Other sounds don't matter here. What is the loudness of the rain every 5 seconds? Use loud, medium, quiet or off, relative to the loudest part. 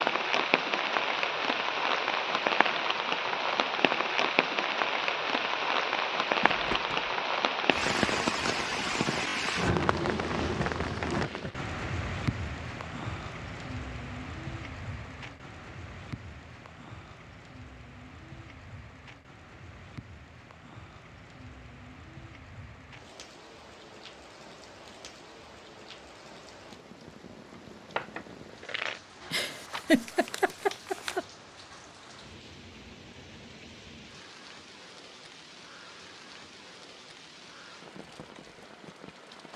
loud, loud, medium, quiet, quiet, quiet, quiet, quiet.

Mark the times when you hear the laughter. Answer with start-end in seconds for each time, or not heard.
29.3-31.2.